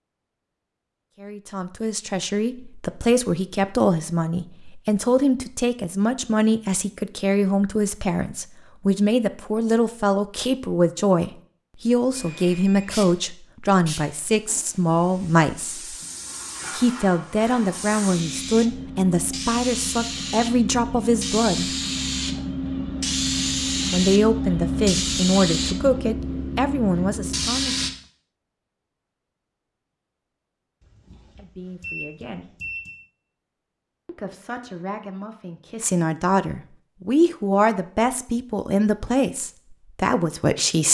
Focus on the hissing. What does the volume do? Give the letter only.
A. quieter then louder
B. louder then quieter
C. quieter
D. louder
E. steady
D.